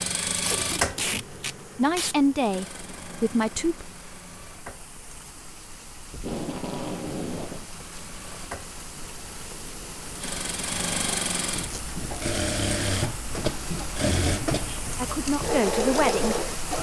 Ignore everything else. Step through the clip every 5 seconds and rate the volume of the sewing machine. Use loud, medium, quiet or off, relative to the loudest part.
medium, quiet, loud, loud.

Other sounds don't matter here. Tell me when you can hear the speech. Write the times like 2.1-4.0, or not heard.
1.8-3.9, 14.9-16.4.